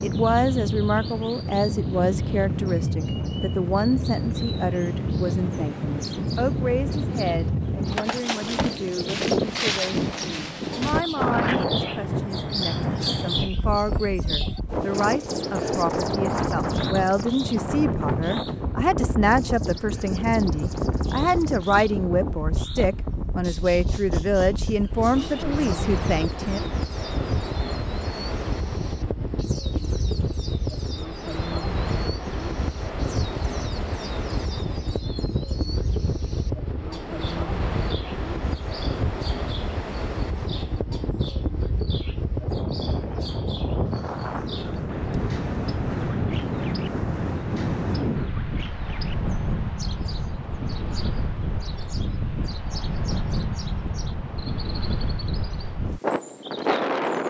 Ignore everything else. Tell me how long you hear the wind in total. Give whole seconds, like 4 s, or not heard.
57 s.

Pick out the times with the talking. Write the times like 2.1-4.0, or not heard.
0.0-26.6.